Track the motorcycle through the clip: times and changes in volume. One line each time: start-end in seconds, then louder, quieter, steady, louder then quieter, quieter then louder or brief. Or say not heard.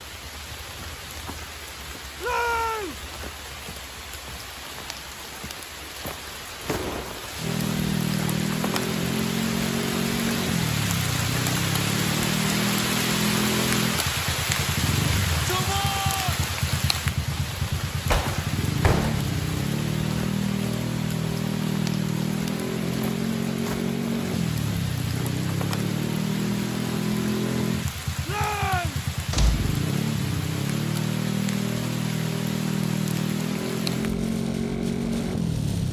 7.3-35.8 steady.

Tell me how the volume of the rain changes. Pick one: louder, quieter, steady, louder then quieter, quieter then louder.
louder then quieter.